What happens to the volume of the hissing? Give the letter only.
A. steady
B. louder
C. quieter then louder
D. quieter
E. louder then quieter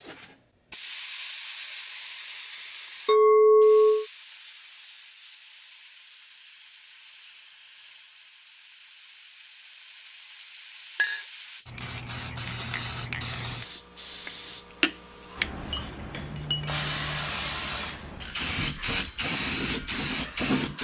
C.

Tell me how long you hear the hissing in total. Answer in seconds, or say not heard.
21 s.